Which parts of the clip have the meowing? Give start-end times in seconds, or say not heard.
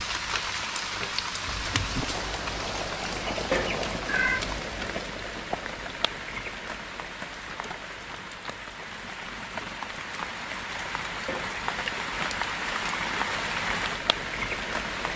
3.5-4.5, 11.2-11.8.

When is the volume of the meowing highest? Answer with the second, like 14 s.
4 s.